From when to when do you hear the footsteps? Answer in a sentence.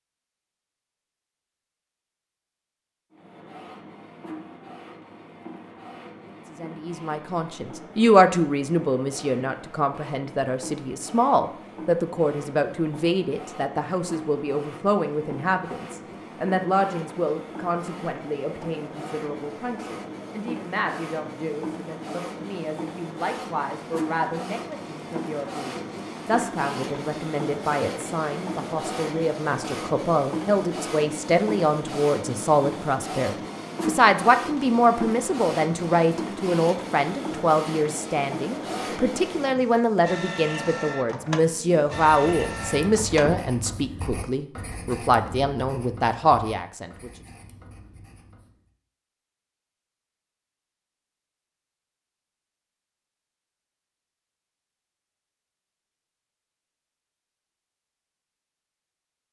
You can't hear the footsteps here.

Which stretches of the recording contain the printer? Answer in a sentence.
You can hear the printer from 3.1 to 43.5 s.